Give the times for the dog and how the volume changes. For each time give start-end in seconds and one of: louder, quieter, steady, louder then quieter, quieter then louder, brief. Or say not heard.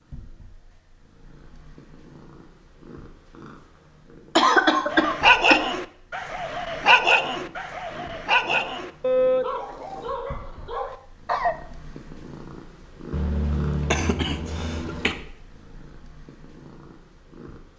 4.9-11.6 quieter.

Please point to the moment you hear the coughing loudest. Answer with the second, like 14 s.
5 s.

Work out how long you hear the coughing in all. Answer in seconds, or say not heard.
3 s.